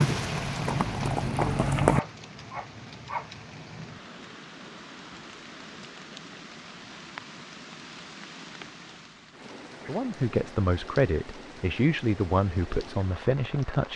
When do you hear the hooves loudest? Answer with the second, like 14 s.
2 s.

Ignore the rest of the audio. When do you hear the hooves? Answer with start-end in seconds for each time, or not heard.
0.1-2.0.